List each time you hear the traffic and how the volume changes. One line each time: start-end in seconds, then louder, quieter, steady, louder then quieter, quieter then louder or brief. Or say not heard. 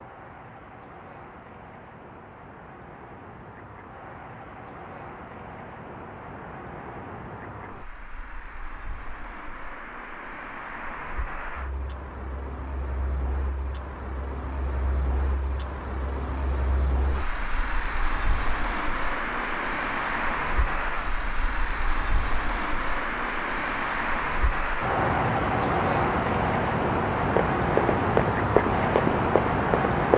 0.0-30.1 louder.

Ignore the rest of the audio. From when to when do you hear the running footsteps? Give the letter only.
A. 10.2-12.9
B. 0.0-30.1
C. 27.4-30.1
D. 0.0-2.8
C.